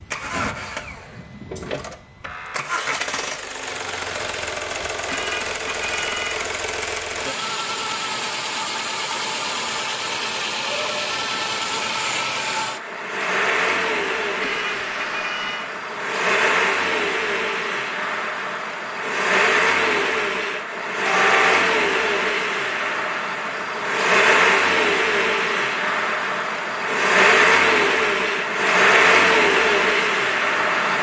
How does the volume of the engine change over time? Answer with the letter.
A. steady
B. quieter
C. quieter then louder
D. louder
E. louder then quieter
D.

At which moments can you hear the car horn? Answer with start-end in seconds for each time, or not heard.
5.0-6.5, 14.4-15.7, 21.1-21.5.